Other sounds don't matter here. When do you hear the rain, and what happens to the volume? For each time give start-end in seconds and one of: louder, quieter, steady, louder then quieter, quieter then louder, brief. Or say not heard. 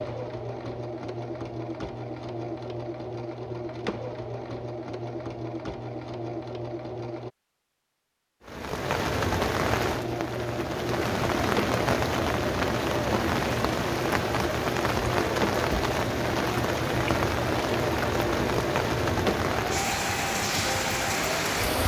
8.4-21.8 steady.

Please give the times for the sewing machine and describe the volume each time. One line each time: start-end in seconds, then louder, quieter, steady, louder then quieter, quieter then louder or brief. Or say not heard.
0.0-7.3 steady
9.7-21.8 steady.